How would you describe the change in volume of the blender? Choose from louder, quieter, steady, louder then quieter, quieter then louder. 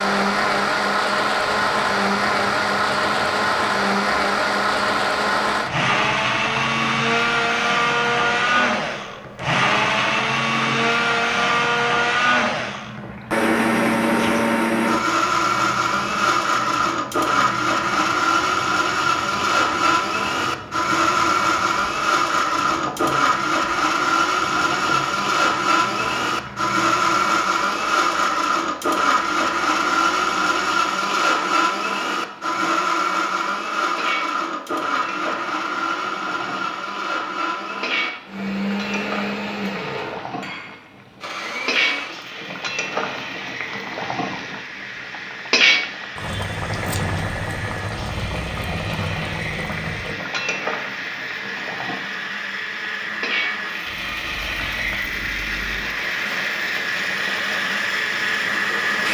quieter.